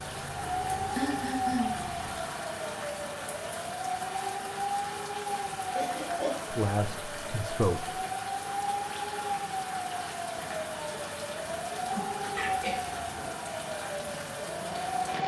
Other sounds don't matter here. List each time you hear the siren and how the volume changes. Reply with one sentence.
The siren can be heard from 0.0 to 15.2 s, at a steady volume.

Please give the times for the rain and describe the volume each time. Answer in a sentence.
You can hear the rain from 0.0 to 15.2 s, at a steady volume.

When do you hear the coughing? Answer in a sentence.
You can hear the coughing from 0.9 to 1.9 s, from 5.8 to 6.3 s and from 12.3 to 13.3 s.